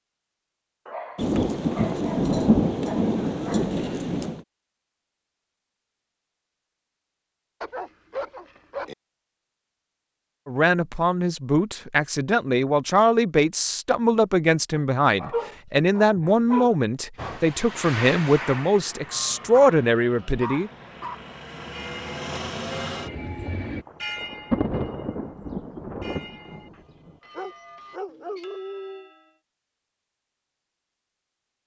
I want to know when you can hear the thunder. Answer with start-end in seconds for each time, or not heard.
1.1-4.5, 23.9-27.1.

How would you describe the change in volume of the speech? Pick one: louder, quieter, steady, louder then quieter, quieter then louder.
steady.